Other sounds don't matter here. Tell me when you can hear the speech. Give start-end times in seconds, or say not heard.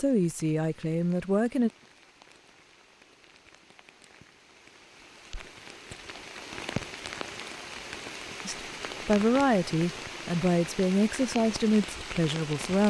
0.0-1.7, 8.4-12.8.